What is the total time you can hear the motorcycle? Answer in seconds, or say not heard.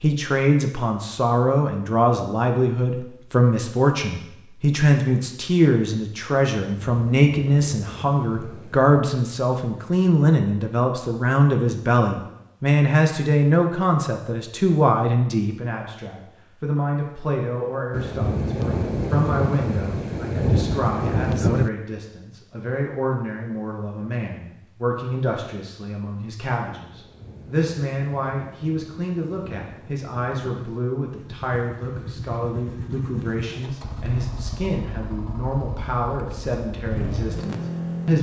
7 s.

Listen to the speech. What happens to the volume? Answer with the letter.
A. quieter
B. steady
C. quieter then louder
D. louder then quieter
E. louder
A.